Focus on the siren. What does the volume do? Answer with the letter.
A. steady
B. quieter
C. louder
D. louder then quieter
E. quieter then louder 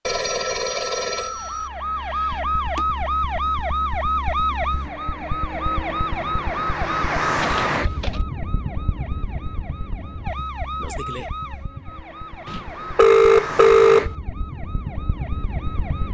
B.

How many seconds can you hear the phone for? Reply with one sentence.
You can hear the phone for 4 seconds altogether.